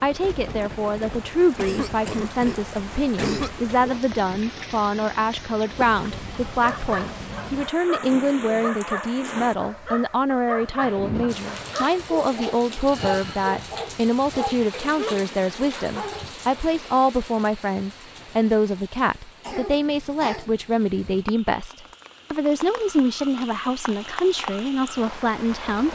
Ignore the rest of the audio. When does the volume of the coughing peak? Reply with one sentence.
The loudest moment of the coughing is at 3 seconds.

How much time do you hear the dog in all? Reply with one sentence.
The dog can be heard for 10 seconds in total.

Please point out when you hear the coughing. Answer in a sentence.
The coughing can be heard from 1.6 to 3.7 s and from 19.4 to 20.4 s.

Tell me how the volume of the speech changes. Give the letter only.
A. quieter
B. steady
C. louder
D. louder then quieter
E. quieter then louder
B.